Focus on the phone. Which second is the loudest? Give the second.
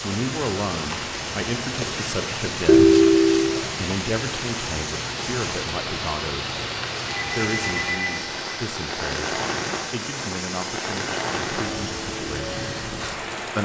3 s.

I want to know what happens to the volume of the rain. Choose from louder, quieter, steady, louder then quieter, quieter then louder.
steady.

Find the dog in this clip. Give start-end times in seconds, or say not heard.
not heard.